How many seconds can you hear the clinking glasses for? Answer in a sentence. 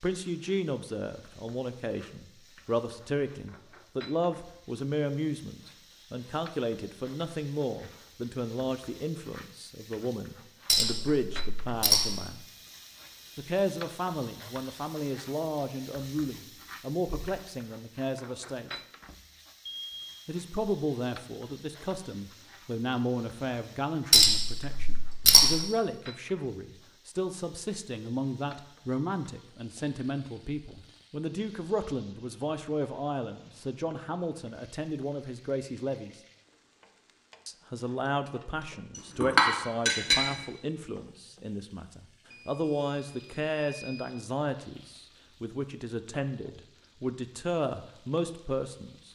You can hear the clinking glasses for 4 seconds altogether.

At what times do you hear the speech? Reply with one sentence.
You can hear the speech from 0.0 to 12.4 s, from 13.3 to 18.8 s, from 20.2 to 36.1 s and from 37.5 to 49.1 s.